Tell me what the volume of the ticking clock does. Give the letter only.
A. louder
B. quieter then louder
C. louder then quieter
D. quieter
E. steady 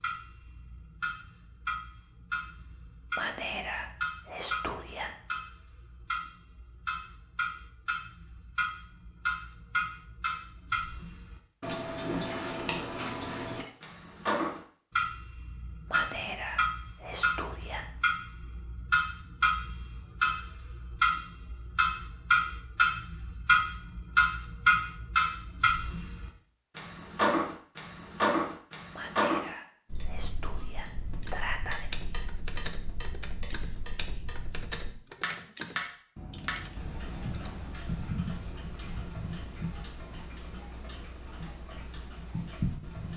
C.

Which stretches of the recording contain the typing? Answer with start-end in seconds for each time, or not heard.
31.2-37.9.